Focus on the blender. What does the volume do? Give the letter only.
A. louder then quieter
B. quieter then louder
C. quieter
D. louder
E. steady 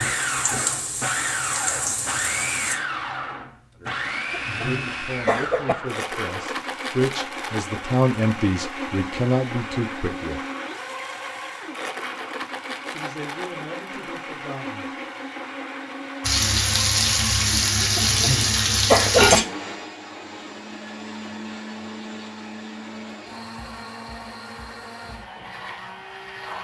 C.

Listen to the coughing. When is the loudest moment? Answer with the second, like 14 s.
19 s.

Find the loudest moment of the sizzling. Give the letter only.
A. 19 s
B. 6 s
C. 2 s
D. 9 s
A.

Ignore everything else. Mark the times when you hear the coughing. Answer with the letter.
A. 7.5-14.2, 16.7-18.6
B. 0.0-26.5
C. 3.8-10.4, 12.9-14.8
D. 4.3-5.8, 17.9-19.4
D.